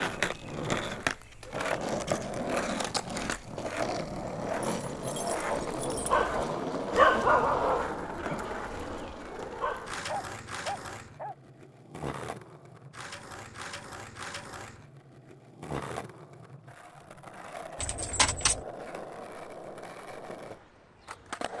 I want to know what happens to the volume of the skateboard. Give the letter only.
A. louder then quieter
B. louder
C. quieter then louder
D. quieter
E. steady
D.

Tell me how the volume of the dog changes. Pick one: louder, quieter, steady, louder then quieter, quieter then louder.
quieter then louder.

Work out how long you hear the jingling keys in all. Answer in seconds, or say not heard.
2 s.